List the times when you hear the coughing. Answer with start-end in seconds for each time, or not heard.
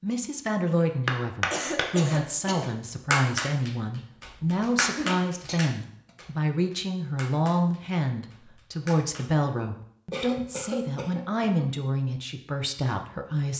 1.5-2.7, 4.8-6.2, 10.1-11.7.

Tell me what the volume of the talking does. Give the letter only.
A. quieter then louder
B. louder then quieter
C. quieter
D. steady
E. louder
D.